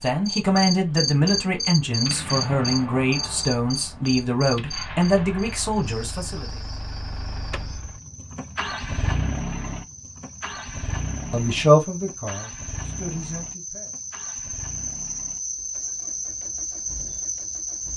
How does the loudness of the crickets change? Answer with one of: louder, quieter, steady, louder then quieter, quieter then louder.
quieter then louder.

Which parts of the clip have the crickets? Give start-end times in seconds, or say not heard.
0.0-17.9.